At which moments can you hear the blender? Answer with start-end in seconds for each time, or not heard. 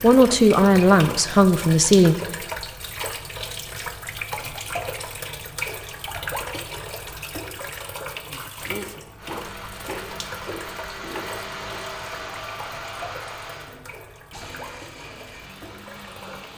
9.2-16.5.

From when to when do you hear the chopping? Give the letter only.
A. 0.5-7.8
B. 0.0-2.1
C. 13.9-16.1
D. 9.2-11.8
D.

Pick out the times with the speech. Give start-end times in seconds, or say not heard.
0.0-2.1.